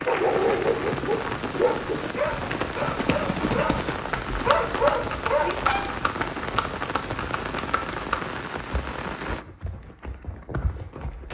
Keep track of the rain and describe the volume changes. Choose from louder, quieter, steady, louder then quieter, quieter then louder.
steady.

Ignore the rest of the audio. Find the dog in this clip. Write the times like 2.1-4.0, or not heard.
0.1-5.8.